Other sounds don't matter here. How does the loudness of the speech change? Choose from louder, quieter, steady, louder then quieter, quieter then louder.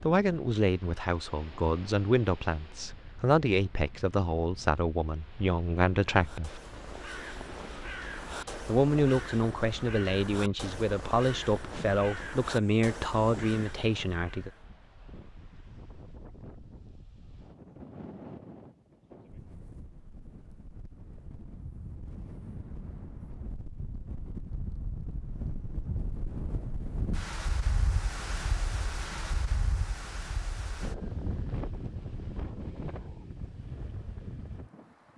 steady.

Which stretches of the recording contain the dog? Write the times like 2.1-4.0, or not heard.
not heard.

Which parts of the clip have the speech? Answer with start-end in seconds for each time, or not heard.
0.0-6.6, 8.7-14.5.